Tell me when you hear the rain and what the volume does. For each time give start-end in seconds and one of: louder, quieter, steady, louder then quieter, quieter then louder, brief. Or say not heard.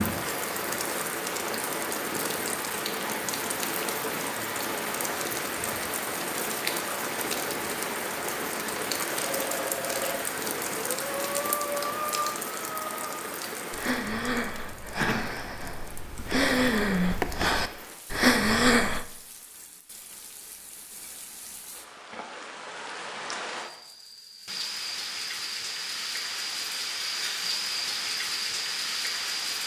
0.0-29.6 quieter then louder.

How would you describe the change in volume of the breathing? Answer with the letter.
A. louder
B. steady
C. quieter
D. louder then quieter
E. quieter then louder
A.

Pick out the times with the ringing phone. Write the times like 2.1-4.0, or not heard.
9.2-10.2.